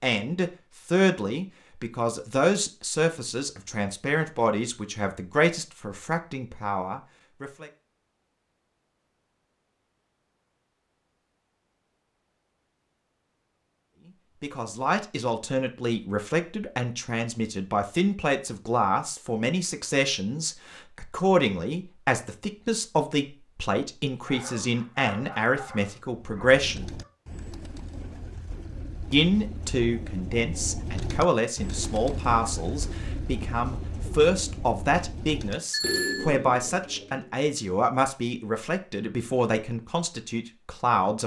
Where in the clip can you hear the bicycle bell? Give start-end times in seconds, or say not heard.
35.7-36.4.